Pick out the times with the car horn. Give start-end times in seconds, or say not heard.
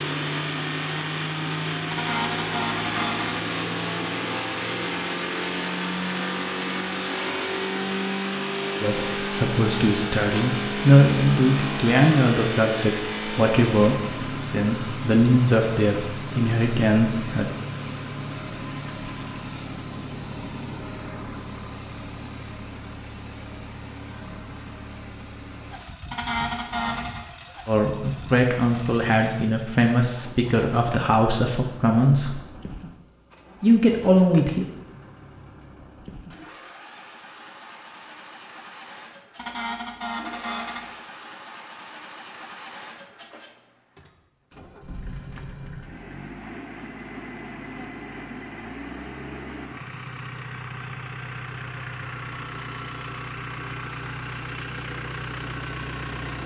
1.9-3.5, 26.1-27.2, 39.4-40.9.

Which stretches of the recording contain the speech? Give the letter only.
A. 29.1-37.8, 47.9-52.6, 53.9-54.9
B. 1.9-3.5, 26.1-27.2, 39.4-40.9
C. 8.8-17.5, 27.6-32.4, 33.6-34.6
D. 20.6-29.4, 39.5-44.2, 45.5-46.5
C.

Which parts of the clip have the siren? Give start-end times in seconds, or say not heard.
not heard.